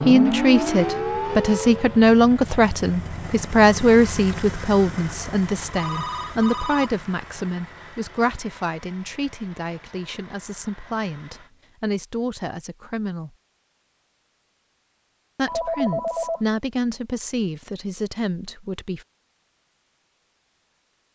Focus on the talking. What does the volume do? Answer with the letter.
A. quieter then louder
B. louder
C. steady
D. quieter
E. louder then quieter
D.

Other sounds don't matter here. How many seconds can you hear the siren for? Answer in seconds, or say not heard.
2 s.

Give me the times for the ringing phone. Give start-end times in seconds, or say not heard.
5.7-6.9, 15.4-16.4.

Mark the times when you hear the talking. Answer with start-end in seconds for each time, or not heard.
0.0-13.3, 15.3-19.1.